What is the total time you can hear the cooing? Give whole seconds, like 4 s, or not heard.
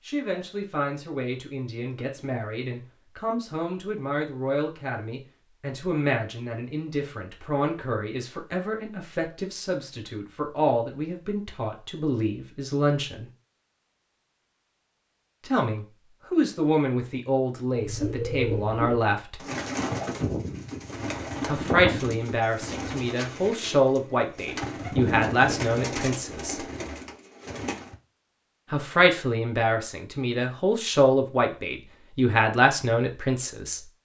10 s.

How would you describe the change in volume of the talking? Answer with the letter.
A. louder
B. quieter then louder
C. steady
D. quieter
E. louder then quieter
A.